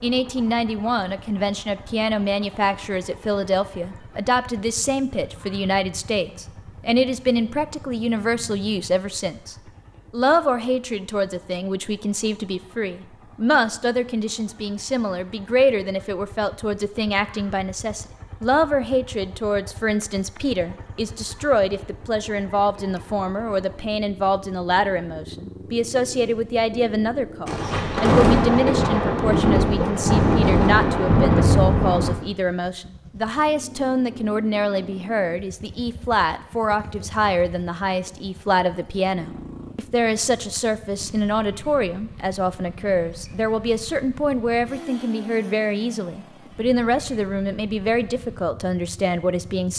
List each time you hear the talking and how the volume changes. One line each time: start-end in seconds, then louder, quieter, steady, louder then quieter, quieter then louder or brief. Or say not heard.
0.0-49.7 steady.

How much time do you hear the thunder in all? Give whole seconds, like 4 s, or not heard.
9 s.